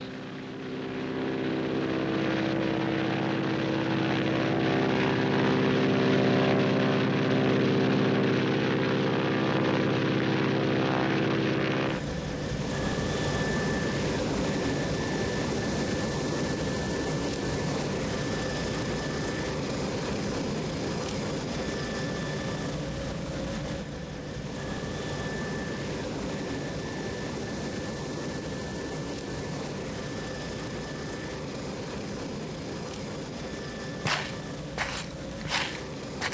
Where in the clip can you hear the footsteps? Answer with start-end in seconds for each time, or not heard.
34.0-36.2.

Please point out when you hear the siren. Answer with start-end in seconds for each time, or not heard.
not heard.